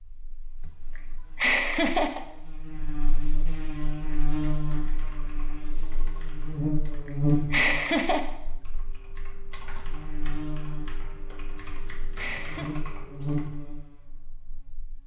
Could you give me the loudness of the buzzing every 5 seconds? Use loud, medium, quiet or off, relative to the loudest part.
medium, loud, medium.